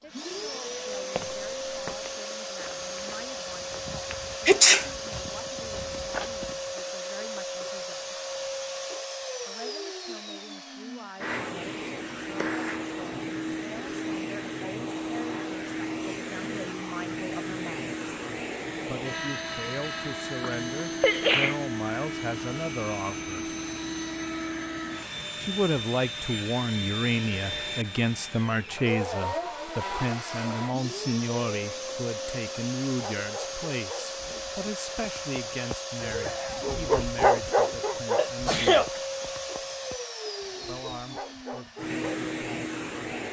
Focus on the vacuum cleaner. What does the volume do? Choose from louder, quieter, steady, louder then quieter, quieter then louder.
steady.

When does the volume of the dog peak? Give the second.
37 s.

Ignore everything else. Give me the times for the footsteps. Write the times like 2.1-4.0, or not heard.
0.9-6.7.